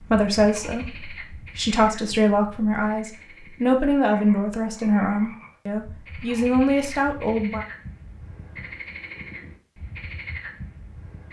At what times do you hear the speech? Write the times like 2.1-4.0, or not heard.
0.0-7.7.